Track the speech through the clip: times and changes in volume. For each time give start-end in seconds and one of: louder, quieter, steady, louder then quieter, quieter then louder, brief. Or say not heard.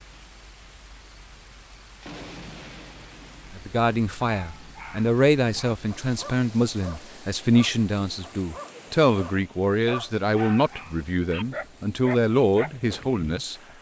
3.5-13.6 steady.